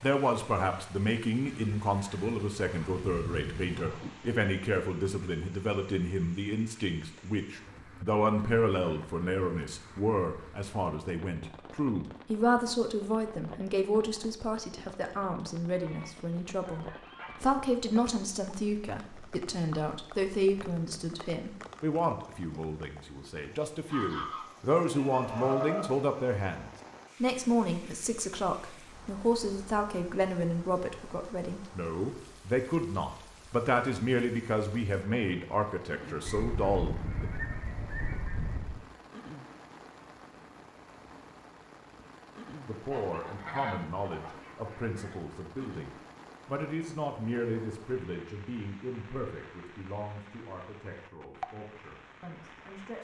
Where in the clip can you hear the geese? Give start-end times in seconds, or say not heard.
1.4-4.0, 15.8-17.4, 23.9-25.9, 36.2-38.8, 42.9-45.2.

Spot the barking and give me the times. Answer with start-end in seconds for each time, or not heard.
not heard.